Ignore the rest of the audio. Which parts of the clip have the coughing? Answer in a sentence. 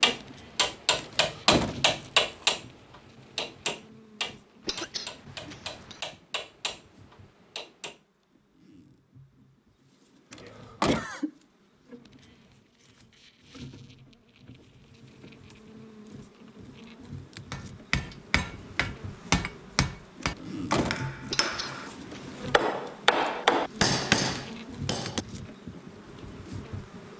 You can hear the coughing from 4.7 to 6.0 s, from 10.4 to 11.3 s and from 21.3 to 22.4 s.